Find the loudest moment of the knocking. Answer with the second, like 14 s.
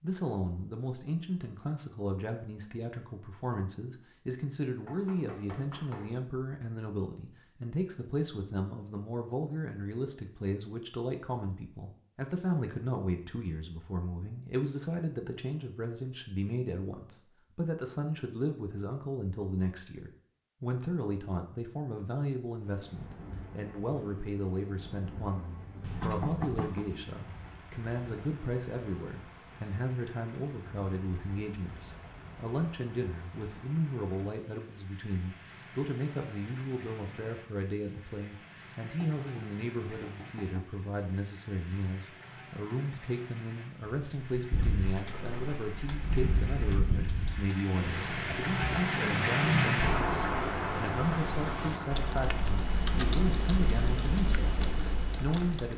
26 s.